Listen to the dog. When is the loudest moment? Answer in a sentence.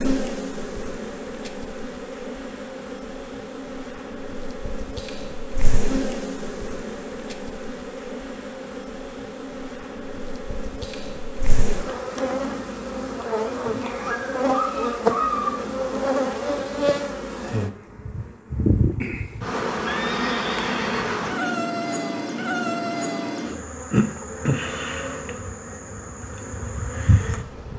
The loudest moment of the dog is at 15 seconds.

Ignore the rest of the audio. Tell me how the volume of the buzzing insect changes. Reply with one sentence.
The loudness of the buzzing insect goes up.